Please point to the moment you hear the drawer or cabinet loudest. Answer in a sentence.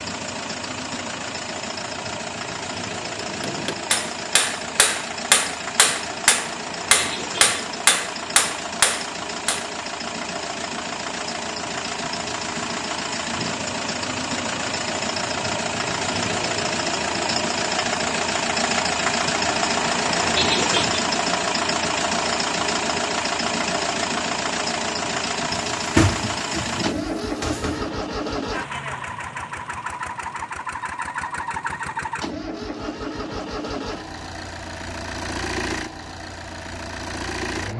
The loudest moment of the drawer or cabinet is at 26 seconds.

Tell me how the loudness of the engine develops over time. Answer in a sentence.
The loudness of the engine goes up, then down.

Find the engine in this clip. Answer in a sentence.
The engine can be heard from 0.0 to 37.7 s.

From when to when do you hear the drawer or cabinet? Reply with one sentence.
You can hear the drawer or cabinet from 25.5 to 27.9 s.